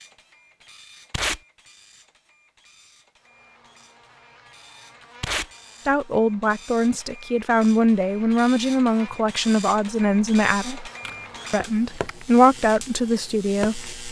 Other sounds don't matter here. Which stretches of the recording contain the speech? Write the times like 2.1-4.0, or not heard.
5.8-10.9, 11.5-13.9.